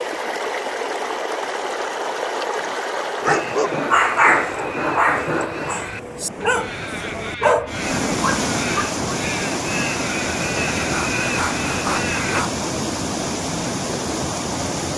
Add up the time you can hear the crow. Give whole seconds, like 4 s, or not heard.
9 s.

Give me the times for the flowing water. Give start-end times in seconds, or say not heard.
0.0-14.9.